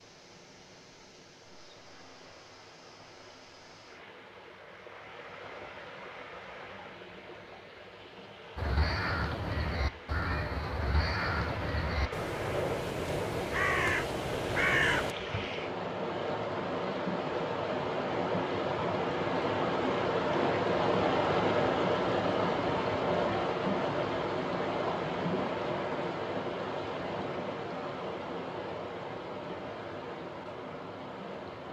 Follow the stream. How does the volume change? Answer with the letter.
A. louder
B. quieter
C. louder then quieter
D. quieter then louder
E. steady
C.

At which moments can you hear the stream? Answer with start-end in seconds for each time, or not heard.
0.0-31.6.